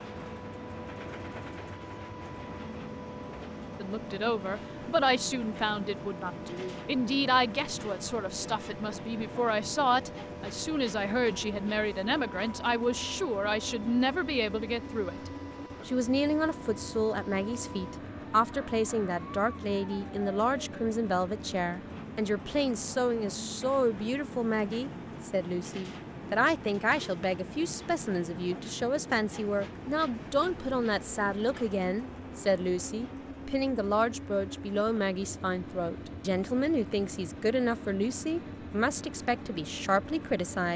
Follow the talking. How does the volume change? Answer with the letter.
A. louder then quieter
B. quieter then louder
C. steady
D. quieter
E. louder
C.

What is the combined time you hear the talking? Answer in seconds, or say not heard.
37 s.